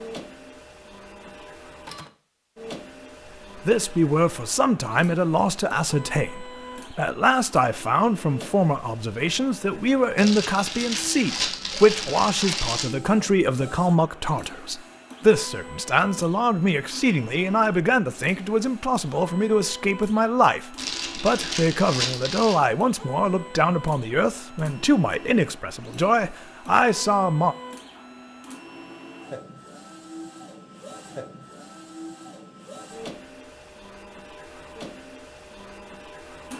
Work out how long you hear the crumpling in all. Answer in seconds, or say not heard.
5 s.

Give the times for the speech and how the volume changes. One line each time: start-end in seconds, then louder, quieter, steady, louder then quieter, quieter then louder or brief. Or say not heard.
3.6-27.6 steady.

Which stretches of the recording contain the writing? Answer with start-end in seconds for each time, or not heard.
not heard.